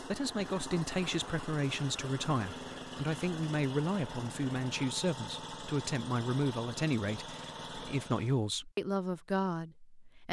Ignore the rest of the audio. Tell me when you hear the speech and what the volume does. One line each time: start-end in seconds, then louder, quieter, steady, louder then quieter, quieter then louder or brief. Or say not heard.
0.0-10.2 steady.